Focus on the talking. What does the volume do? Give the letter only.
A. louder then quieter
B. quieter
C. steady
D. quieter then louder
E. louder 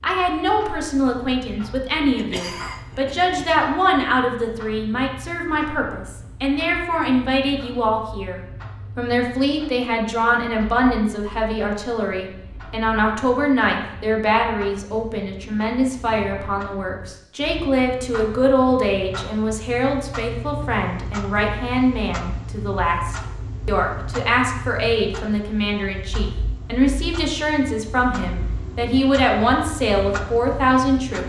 C.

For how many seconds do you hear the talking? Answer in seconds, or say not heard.
31 s.